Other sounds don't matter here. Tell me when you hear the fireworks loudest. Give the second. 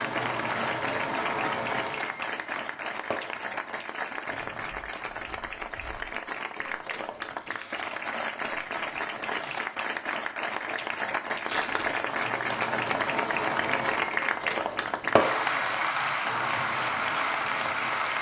15 s.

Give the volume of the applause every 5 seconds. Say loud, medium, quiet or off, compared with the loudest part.
medium, medium, loud, loud.